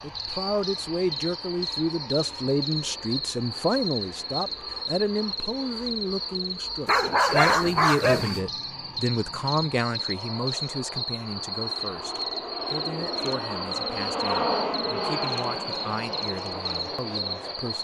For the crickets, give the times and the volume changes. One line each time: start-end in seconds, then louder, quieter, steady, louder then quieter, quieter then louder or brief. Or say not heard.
0.0-17.7 steady.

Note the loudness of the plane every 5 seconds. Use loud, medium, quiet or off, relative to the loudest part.
quiet, quiet, loud, loud.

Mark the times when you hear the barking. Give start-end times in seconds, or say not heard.
6.8-8.4.